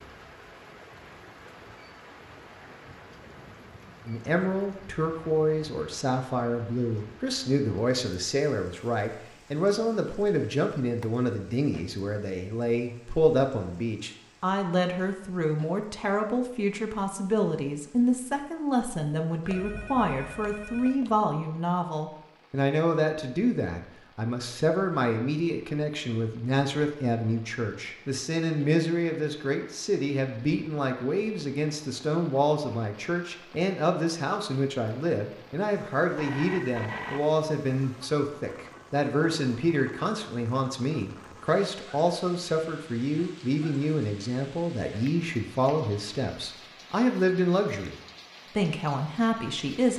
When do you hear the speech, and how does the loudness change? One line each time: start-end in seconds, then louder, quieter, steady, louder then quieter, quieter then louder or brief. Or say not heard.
4.0-48.0 steady
48.5-49.9 brief.